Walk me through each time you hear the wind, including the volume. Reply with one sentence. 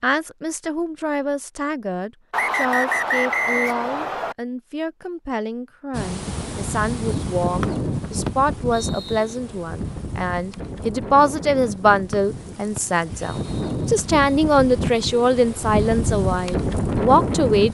You can hear the wind from 5.9 to 17.7 s, getting quieter then louder.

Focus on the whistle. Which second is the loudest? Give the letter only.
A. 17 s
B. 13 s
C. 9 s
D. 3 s
D.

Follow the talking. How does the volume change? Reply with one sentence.
The volume of the talking goes up.